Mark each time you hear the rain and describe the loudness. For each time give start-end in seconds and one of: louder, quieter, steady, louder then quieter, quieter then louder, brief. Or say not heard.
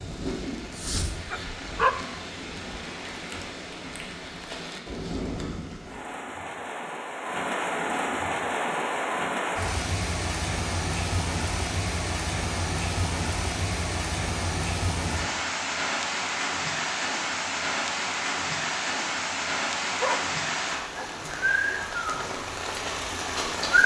0.0-23.8 louder.